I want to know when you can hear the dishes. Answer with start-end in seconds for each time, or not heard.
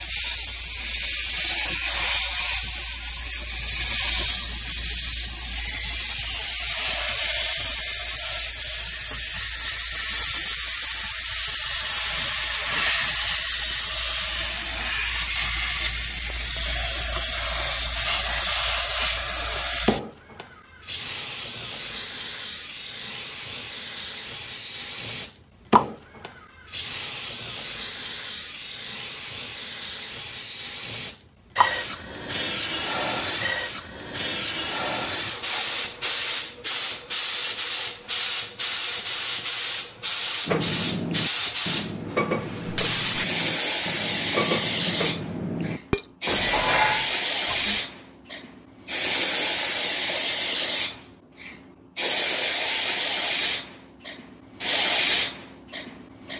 40.5-47.8.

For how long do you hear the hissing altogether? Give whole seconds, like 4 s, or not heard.
56 s.